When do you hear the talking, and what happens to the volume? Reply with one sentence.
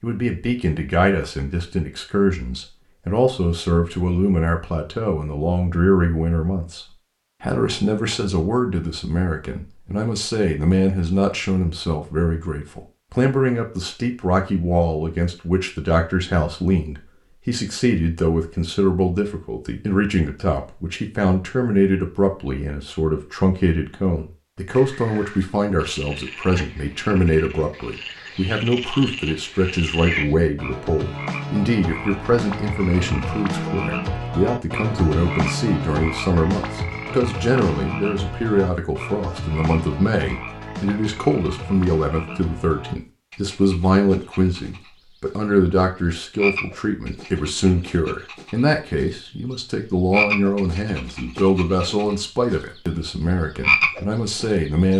You can hear the talking from 0.0 to 54.9 s, at a steady volume.